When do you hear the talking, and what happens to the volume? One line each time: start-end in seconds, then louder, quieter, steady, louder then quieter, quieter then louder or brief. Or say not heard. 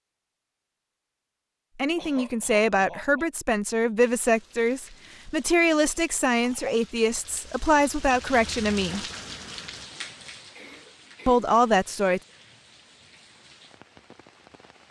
1.8-9.1 steady
11.2-12.2 brief.